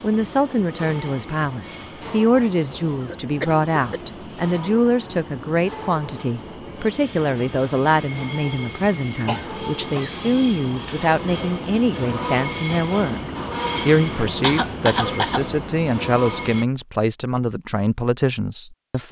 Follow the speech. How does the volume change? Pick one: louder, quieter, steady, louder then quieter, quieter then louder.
steady.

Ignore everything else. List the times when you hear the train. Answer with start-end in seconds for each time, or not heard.
0.0-16.6.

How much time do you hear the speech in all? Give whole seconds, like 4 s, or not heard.
18 s.